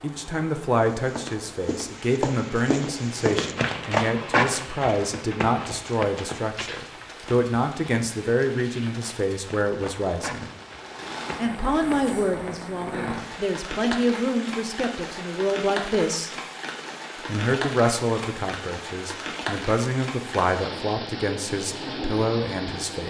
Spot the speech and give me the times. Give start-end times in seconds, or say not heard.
0.0-10.5, 11.3-16.3, 17.2-23.0.